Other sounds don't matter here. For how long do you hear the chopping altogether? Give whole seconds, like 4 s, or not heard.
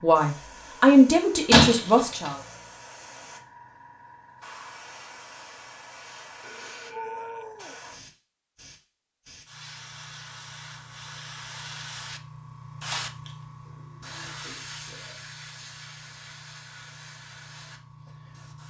not heard.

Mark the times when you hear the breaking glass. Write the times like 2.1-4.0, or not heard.
1.5-2.3, 12.9-13.3.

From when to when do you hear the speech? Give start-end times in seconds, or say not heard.
0.0-2.4.